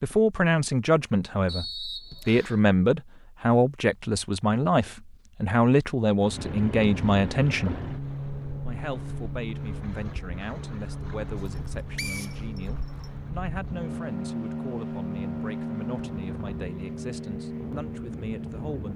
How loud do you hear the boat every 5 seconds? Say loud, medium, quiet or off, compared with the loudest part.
off, loud, loud, loud.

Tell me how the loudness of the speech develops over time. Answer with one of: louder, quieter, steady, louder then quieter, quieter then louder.
quieter.